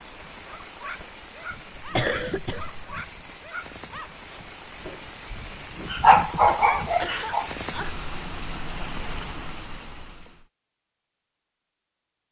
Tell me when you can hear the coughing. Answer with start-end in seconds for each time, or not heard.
1.8-3.3, 6.5-7.9.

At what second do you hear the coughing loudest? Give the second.
2 s.